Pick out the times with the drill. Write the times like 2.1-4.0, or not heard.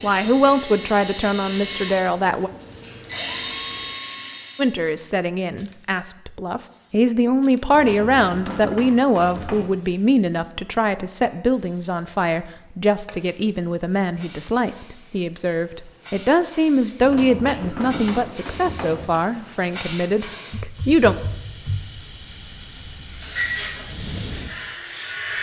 0.0-4.8, 23.1-25.3.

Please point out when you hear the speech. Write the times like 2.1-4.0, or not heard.
0.0-2.5, 4.5-21.1.